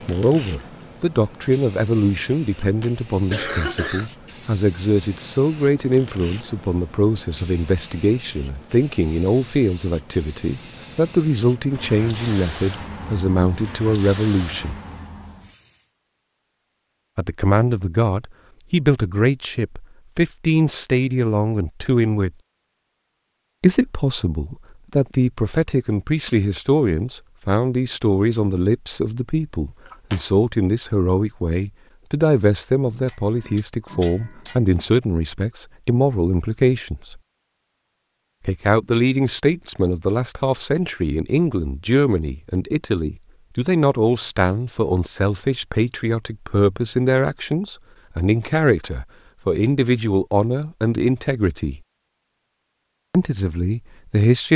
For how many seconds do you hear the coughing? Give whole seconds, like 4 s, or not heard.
2 s.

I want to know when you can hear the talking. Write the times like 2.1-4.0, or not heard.
0.1-14.8, 17.1-22.3, 23.6-37.2, 38.5-51.8, 53.1-54.5.